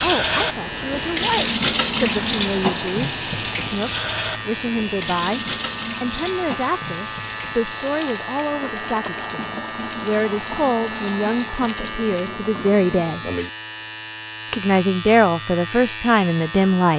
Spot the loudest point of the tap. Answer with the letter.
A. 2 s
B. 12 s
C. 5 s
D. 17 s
A.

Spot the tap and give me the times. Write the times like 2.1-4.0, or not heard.
0.0-13.3.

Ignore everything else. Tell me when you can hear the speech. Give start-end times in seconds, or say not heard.
0.0-13.2, 14.5-16.9.